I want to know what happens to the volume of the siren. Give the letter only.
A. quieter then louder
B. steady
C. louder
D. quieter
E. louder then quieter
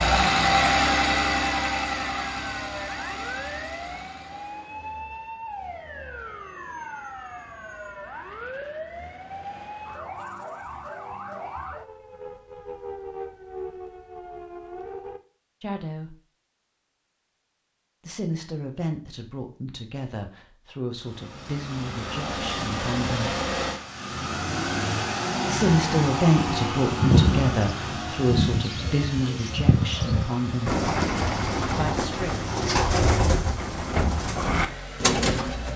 B.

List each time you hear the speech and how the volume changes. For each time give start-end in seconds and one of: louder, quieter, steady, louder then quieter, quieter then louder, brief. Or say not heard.
15.6-16.1 brief
18.1-23.4 steady
25.4-30.8 quieter
31.8-32.4 brief.